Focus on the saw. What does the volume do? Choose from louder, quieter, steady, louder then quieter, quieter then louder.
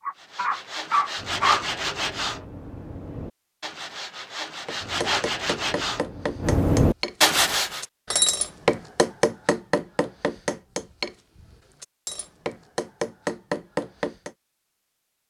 quieter then louder.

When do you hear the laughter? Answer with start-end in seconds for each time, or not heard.
not heard.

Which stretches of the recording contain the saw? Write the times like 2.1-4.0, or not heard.
0.2-7.8.